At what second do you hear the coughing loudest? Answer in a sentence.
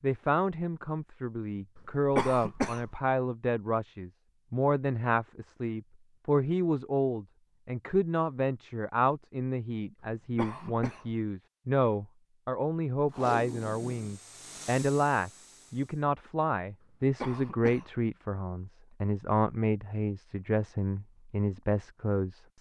The volume of the coughing peaks at 2 seconds.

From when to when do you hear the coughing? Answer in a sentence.
The coughing can be heard from 1.8 to 2.9 s, from 10.2 to 11.2 s and from 16.8 to 17.9 s.